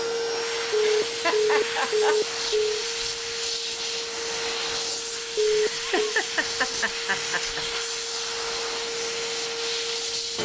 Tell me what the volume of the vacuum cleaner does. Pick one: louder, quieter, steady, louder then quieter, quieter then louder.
steady.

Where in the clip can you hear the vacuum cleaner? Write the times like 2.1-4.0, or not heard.
0.0-10.4.